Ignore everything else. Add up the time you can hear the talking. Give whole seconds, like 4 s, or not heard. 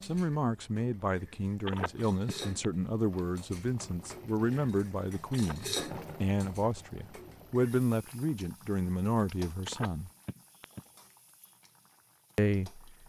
11 s.